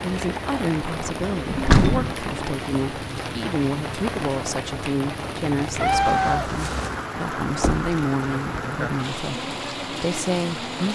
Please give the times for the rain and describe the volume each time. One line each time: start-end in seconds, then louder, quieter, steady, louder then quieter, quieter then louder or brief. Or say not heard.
0.0-10.9 steady.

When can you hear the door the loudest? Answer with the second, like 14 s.
2 s.